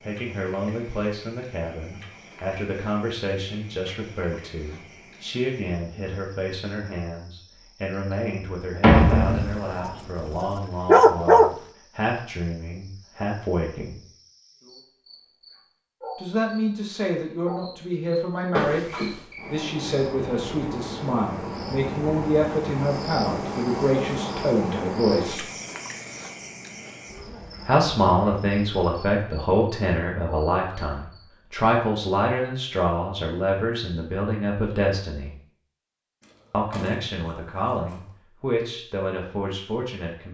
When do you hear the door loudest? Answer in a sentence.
The loudest moment of the door is at 9 seconds.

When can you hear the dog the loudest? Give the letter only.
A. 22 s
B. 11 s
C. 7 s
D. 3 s
B.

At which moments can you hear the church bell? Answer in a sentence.
The church bell can't be heard in this clip.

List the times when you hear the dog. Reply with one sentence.
You can hear the dog from 9.0 to 11.6 s.